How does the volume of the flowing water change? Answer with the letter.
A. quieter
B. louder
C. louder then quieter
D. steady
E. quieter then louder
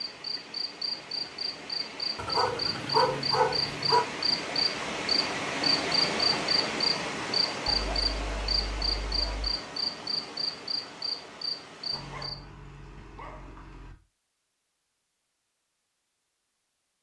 C.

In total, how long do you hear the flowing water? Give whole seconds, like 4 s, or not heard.
12 s.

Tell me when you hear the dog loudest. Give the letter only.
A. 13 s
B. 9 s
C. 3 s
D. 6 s
C.